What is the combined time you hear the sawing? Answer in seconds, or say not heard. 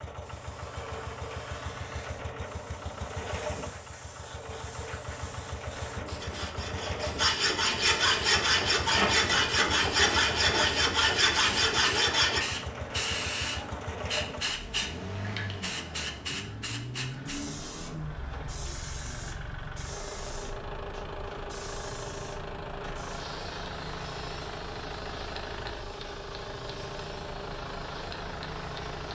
6 s.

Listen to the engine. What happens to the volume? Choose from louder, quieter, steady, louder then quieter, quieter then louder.
steady.